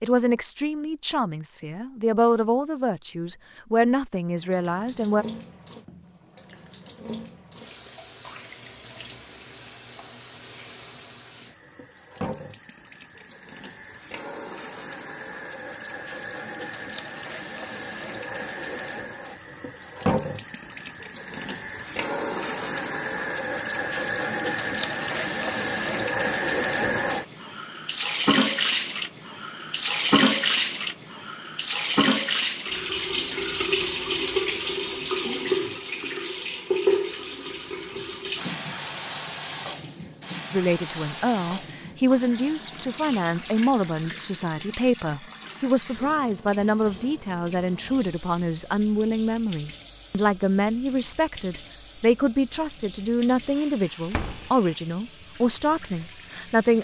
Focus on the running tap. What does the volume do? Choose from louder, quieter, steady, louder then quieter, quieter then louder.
louder then quieter.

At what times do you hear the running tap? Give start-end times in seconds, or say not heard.
4.2-56.7.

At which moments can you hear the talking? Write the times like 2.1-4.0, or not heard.
0.0-5.2, 40.5-56.7.